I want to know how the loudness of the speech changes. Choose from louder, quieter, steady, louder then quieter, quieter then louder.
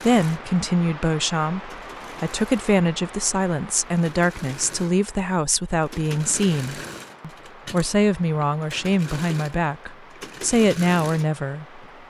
steady.